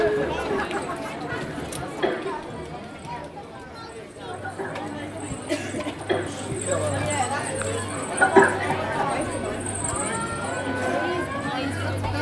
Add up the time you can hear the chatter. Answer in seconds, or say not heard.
12 s.